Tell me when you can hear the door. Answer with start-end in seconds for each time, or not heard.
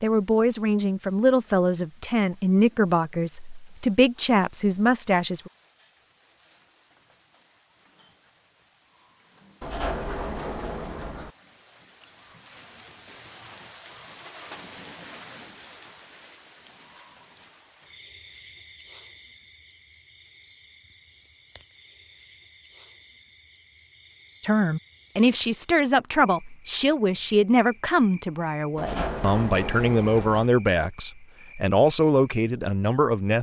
9.6-11.3, 28.8-30.5.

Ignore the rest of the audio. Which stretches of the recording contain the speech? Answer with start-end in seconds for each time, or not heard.
0.0-5.5, 24.4-33.3.